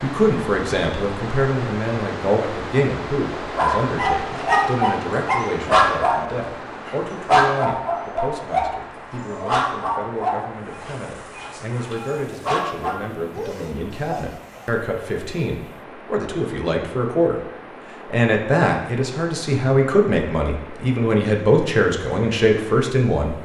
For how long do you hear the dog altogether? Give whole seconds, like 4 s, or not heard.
11 s.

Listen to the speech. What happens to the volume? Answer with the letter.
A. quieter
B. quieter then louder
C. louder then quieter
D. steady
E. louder
B.